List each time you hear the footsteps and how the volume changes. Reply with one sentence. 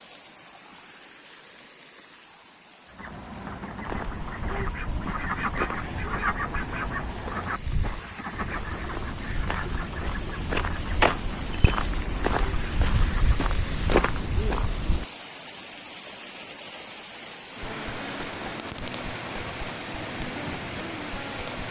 The footsteps can be heard from 3.9 to 15.1 s, getting louder.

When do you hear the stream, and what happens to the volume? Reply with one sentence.
The stream can be heard from 0.0 to 21.6 s, getting louder.